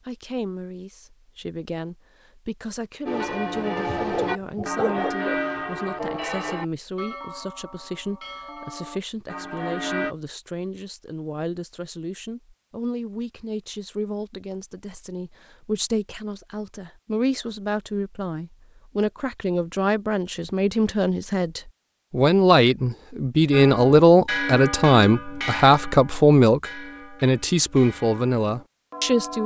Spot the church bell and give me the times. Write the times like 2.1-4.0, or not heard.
3.0-10.2, 23.5-29.4.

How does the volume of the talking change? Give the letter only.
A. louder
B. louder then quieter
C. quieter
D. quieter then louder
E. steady
A.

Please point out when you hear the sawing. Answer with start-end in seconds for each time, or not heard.
not heard.